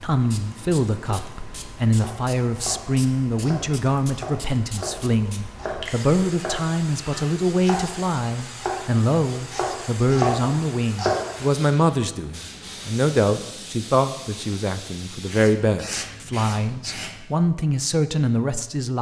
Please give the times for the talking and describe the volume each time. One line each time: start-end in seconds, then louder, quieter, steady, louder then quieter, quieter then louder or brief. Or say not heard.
0.0-18.9 steady.